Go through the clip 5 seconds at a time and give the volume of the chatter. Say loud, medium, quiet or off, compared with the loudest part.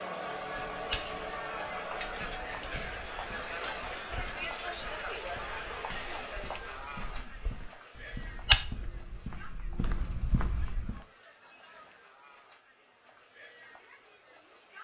loud, medium, quiet.